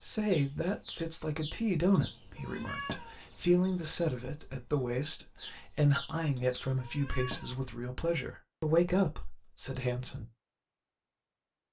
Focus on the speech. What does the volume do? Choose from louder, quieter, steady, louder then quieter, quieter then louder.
steady.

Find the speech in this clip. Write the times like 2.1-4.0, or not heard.
0.0-10.2.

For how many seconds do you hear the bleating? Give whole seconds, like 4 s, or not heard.
not heard.